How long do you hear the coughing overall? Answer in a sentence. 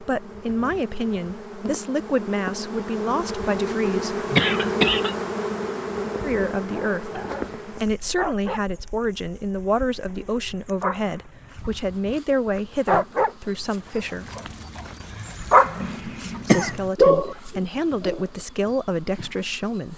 The coughing can be heard for 2 seconds in total.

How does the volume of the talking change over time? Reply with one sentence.
The volume of the talking stays about the same.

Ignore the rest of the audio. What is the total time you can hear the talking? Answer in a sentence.
The talking can be heard for 16 seconds in total.